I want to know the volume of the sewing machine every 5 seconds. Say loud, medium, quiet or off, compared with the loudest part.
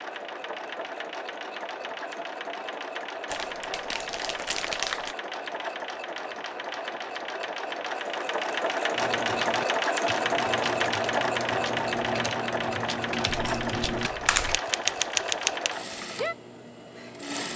medium, loud, loud, medium.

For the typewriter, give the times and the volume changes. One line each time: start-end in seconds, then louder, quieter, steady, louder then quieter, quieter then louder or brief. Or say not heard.
8.9-16.4 louder.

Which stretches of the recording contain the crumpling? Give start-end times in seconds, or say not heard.
3.3-5.2, 13.3-14.6.